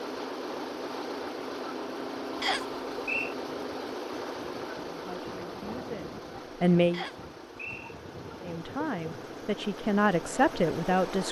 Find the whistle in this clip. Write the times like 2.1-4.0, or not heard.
2.4-3.4, 6.9-8.0.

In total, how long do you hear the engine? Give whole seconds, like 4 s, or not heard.
11 s.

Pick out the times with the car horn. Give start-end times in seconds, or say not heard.
not heard.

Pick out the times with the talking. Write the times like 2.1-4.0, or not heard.
5.0-7.0, 8.4-11.2.